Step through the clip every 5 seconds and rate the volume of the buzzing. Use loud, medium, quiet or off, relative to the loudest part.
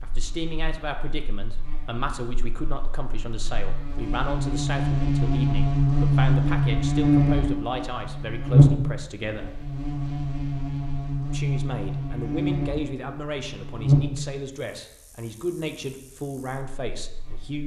medium, loud, medium, quiet.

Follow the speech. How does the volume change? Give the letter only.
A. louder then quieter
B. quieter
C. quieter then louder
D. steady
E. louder
D.